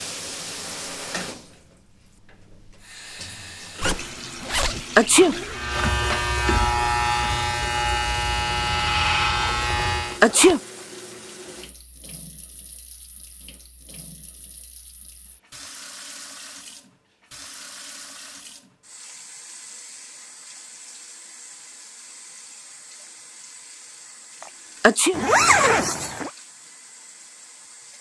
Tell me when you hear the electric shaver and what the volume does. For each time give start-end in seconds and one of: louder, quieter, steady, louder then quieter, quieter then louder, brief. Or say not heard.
5.5-10.2 steady.